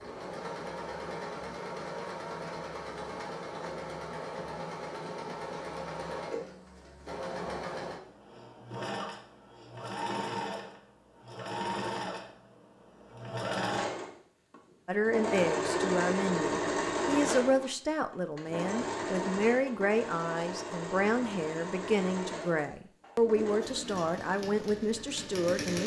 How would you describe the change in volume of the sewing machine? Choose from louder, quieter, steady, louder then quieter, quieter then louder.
louder then quieter.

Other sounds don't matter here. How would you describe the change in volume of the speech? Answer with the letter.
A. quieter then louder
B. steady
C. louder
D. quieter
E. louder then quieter
B.